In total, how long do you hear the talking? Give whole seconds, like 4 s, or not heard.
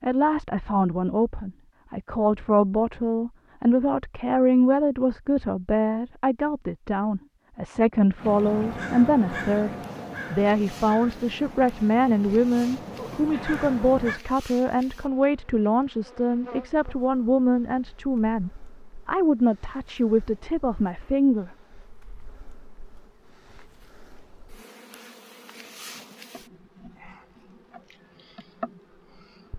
21 s.